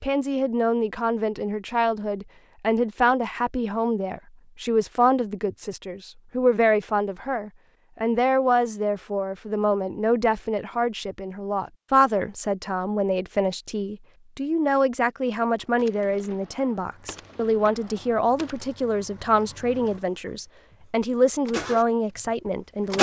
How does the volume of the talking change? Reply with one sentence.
The volume of the talking stays about the same.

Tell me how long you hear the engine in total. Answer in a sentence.
The engine can be heard for 6 seconds in total.